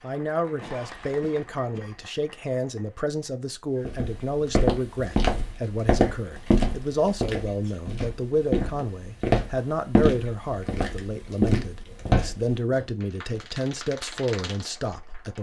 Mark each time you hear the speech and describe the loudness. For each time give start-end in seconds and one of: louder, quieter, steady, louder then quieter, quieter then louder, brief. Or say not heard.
0.0-15.3 steady.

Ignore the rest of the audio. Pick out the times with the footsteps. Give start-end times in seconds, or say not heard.
3.9-13.5.